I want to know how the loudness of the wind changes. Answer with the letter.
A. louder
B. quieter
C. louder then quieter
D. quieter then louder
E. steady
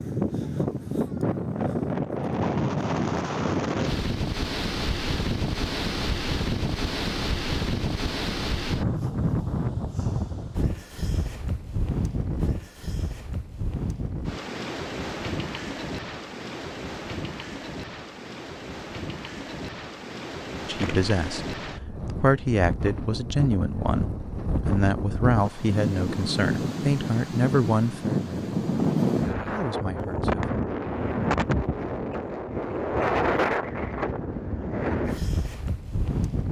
D.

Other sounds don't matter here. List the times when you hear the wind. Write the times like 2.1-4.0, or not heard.
0.0-36.4.